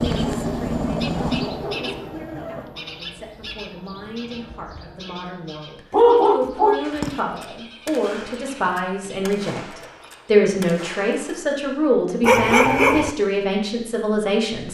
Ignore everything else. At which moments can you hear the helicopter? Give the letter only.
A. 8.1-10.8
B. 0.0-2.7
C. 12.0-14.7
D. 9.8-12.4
B.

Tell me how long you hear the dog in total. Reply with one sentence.
The dog can be heard for 4 seconds in total.